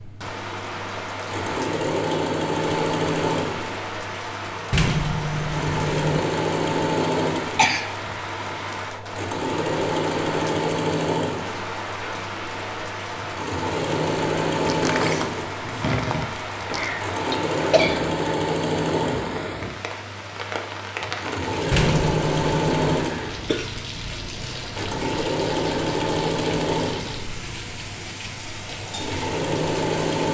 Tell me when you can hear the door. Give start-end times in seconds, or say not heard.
4.7-6.2, 14.7-16.9, 21.7-23.1.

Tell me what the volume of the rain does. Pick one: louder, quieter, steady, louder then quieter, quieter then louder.
steady.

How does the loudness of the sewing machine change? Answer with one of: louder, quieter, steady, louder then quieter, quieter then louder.
steady.